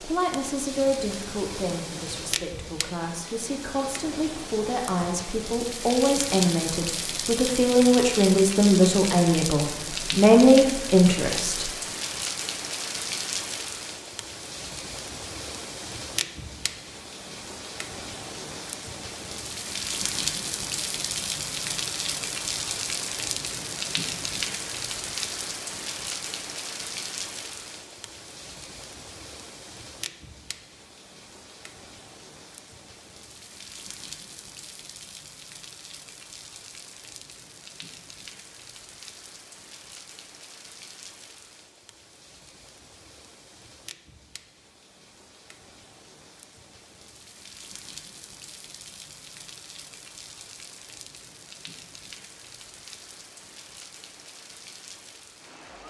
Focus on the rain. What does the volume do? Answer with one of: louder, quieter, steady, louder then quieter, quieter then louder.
quieter.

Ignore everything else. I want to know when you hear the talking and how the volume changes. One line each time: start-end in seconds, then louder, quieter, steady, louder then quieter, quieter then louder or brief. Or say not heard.
0.0-11.7 louder.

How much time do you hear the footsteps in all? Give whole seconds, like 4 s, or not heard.
not heard.